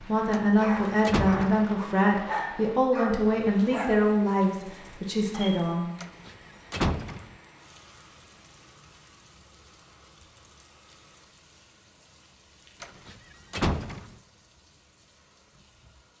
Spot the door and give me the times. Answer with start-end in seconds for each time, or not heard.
0.3-1.6, 6.0-7.3, 12.8-14.2.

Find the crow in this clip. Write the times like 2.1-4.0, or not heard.
not heard.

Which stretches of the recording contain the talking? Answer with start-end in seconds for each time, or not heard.
0.0-5.9.